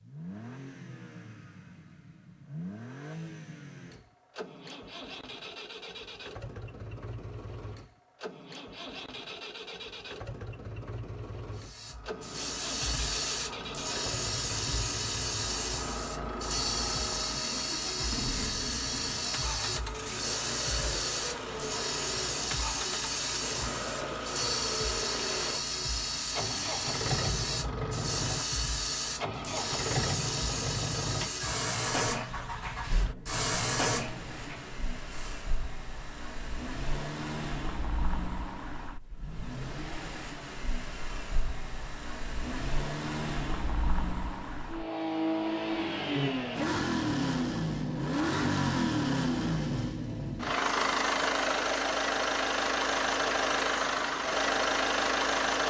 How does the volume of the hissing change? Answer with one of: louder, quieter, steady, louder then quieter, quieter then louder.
steady.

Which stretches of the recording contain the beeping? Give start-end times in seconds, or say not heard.
not heard.